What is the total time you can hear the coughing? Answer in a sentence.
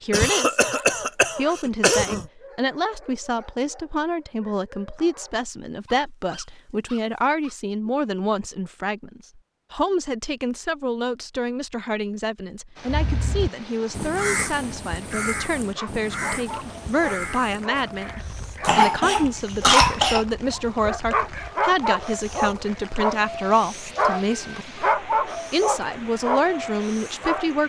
You can hear the coughing for 4 seconds altogether.